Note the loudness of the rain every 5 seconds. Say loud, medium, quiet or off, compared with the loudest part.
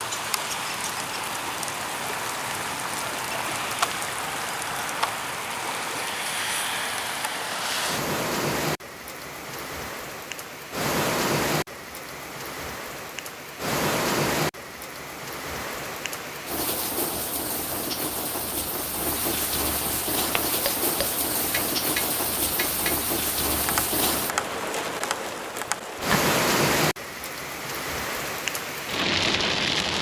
loud, loud, loud, medium, loud, loud.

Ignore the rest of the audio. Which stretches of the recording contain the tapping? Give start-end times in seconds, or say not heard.
20.4-25.9.